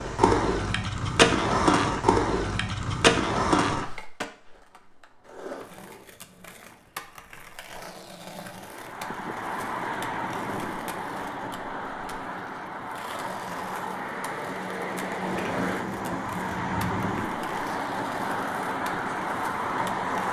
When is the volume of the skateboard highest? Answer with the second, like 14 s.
2 s.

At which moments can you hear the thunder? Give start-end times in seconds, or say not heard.
15.2-17.2.